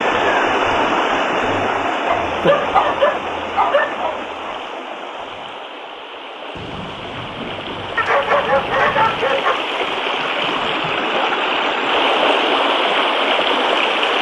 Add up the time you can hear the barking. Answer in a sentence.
The barking can be heard for 4 seconds in total.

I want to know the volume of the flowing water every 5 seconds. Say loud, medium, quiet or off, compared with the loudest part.
loud, medium, loud.